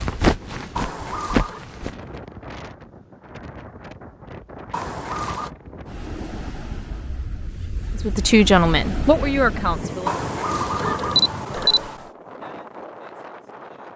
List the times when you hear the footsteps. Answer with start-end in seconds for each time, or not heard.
0.0-1.9.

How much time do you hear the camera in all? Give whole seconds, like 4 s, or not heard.
4 s.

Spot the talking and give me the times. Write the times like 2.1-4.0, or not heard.
8.1-10.1.